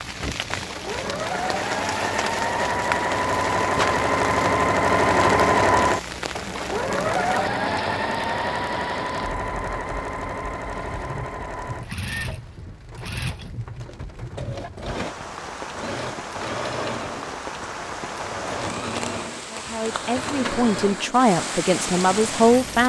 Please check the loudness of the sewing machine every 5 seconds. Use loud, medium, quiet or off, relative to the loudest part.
loud, loud, medium, medium, medium.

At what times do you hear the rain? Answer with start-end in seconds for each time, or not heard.
0.0-22.8.